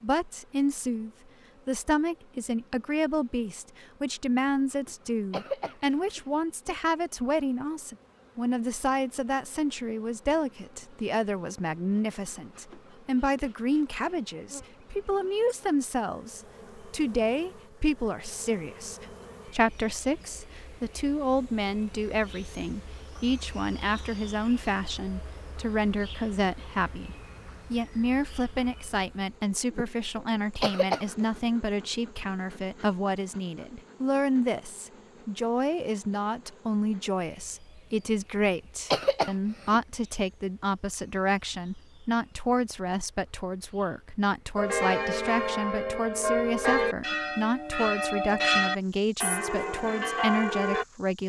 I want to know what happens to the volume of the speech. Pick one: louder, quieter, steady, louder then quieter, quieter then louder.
steady.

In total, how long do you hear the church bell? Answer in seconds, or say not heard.
6 s.